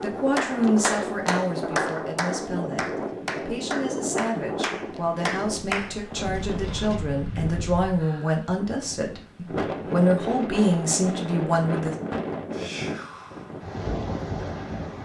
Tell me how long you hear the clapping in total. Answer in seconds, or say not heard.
6 s.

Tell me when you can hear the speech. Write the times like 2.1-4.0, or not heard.
0.0-11.9.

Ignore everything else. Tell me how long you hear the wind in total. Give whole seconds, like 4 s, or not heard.
15 s.